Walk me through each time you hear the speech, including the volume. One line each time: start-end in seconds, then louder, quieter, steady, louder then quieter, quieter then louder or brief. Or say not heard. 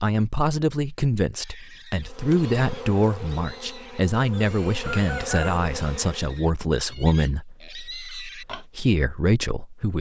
0.0-9.9 steady.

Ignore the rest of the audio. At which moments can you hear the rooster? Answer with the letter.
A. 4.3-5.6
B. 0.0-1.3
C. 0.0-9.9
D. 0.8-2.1
A.